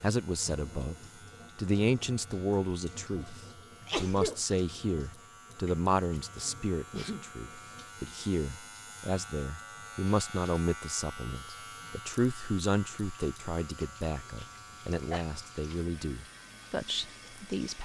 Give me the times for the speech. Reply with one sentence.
The speech can be heard from 0.0 to 17.7 s.